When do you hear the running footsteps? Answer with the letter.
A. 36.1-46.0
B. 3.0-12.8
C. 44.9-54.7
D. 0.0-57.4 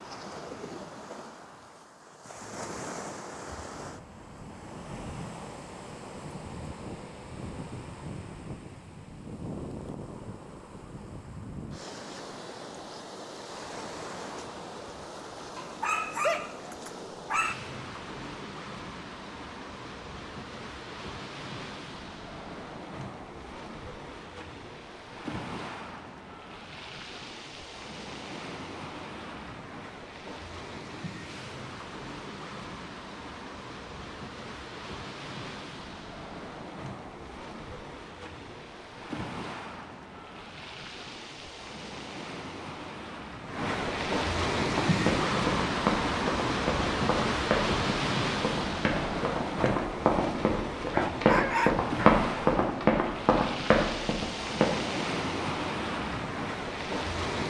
C.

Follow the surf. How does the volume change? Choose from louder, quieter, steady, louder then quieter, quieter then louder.
louder.